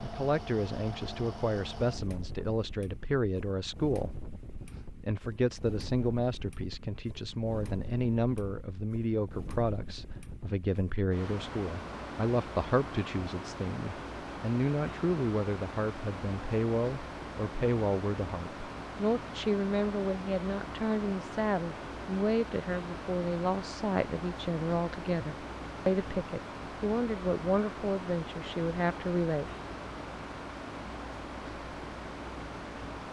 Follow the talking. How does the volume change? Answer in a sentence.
The loudness of the talking stays about the same.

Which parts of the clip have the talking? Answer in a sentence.
You can hear the talking from 0.0 to 29.5 s.